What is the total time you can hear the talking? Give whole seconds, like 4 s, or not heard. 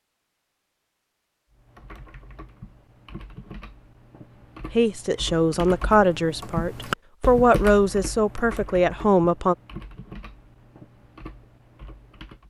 5 s.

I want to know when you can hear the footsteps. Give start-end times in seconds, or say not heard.
not heard.